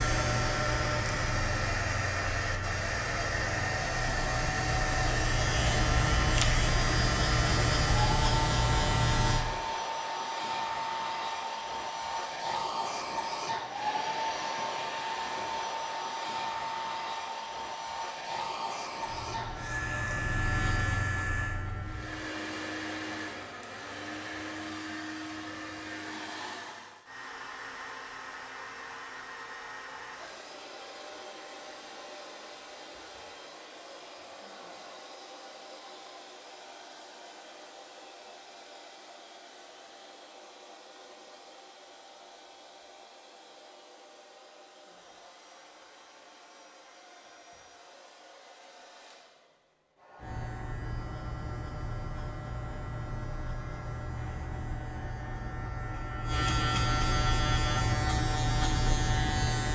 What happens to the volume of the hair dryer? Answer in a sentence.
The volume of the hair dryer goes down.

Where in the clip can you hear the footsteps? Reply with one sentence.
The footsteps can't be heard in this clip.